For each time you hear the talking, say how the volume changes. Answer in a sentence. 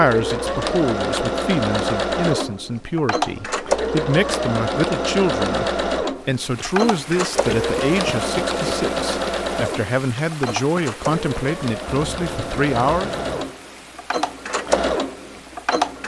You can hear the talking from 0.0 to 13.2 s, at a steady volume.